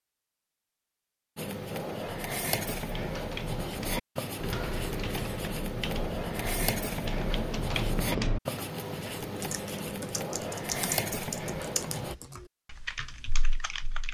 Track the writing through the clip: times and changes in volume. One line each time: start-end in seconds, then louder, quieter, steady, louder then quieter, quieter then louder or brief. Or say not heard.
1.4-12.2 steady.